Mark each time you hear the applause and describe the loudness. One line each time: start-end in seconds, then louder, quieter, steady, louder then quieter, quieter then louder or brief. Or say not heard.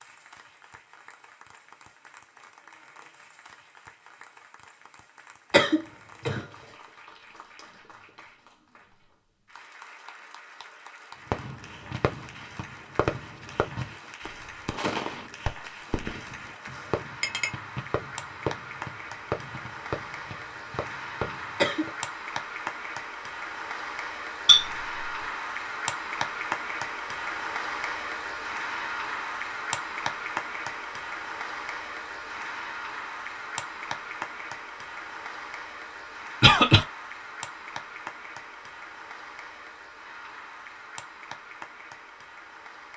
0.0-42.9 louder then quieter.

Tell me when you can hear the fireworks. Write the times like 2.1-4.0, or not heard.
11.3-21.9.